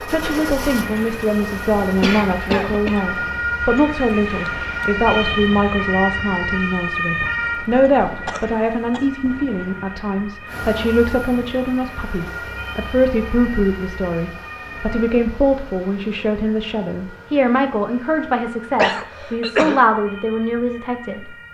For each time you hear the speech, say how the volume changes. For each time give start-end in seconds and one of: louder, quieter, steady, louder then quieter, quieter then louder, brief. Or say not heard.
0.1-21.3 steady.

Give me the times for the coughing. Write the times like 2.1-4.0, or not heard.
2.0-3.0, 8.2-9.1, 18.8-19.9.